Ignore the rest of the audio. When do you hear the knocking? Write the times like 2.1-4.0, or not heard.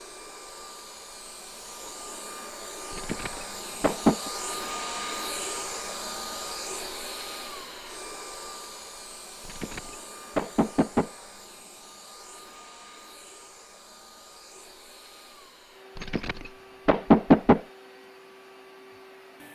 2.9-4.3, 9.4-11.1, 15.9-17.6.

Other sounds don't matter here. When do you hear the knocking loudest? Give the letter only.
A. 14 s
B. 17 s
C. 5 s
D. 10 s
B.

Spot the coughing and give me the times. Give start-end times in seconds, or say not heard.
not heard.